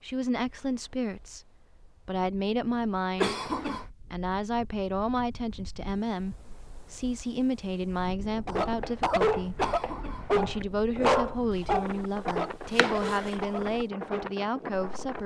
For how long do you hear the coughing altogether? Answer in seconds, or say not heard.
2 s.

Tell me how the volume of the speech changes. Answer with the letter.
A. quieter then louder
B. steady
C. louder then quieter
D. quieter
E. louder
B.